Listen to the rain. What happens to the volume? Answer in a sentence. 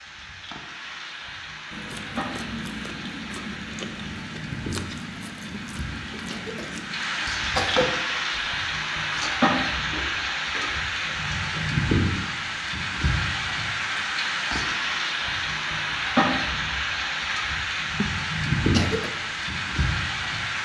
The volume of the rain goes up.